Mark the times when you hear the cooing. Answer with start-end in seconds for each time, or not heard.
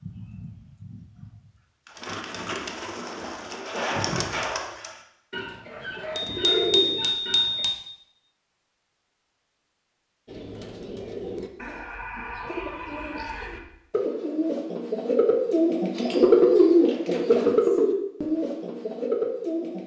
0.0-7.7, 10.2-19.8.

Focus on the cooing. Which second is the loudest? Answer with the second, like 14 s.
16 s.